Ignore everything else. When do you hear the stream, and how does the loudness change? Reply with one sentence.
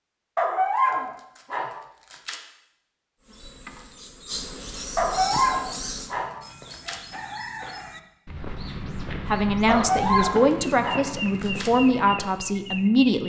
The stream can't be heard in this clip.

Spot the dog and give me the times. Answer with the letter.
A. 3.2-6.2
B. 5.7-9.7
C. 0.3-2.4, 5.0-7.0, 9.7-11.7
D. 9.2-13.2
C.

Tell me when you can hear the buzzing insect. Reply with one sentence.
You can hear the buzzing insect from 3.2 to 6.2 s.